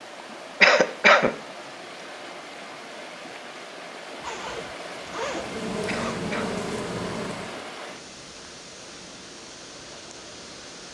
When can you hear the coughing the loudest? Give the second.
1 s.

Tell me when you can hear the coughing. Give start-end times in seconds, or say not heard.
0.6-1.4, 5.8-6.6.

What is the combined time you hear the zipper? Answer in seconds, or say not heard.
2 s.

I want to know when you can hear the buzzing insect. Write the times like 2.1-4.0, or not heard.
5.2-7.7.